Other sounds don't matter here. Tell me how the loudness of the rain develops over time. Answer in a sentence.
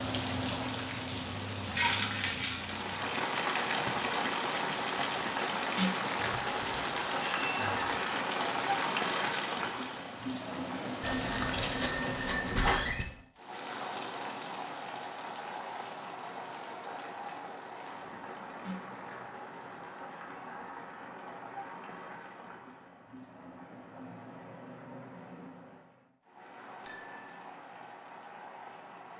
The loudness of the rain goes down.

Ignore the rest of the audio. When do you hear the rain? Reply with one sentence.
The rain can be heard from 0.0 to 29.1 s.